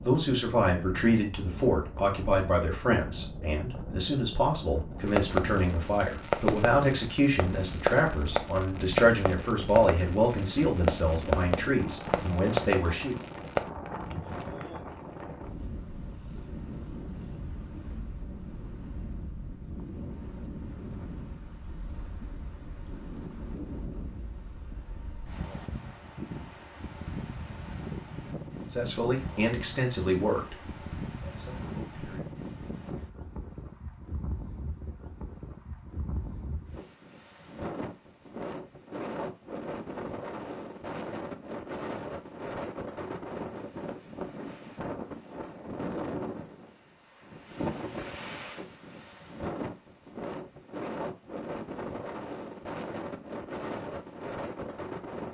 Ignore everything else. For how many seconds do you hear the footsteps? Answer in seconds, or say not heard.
not heard.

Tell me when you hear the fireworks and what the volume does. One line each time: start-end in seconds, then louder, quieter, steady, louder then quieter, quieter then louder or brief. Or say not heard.
5.0-13.7 steady.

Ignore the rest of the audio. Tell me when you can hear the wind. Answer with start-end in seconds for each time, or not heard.
0.0-55.3.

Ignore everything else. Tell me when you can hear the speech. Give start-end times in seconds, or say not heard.
0.0-13.2, 28.7-32.3.